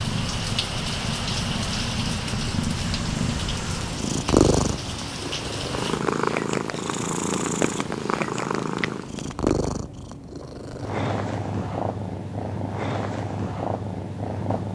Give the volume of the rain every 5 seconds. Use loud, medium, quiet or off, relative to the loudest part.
loud, loud, off.